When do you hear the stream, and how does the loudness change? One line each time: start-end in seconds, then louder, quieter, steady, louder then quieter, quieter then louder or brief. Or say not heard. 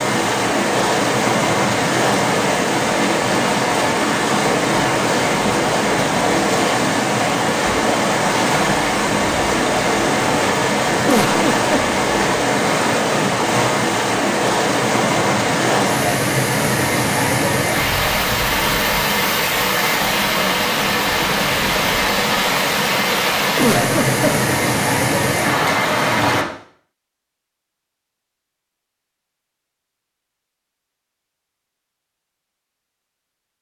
0.0-26.4 steady.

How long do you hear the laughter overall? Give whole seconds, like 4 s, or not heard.
2 s.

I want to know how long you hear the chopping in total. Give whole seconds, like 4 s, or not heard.
not heard.